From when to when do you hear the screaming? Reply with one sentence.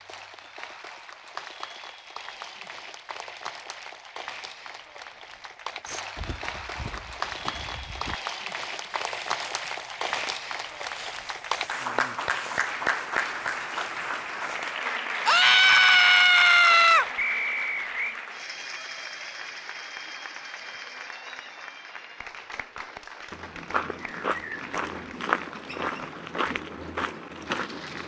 You can hear the screaming from 15.2 to 17.1 s.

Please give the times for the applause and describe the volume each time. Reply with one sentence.
The applause can be heard from 0.0 to 28.0 s, getting louder then quieter.